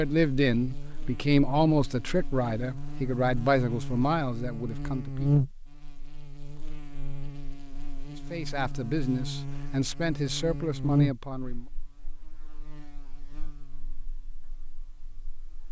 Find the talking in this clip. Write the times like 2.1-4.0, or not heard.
0.0-5.3, 8.3-11.7.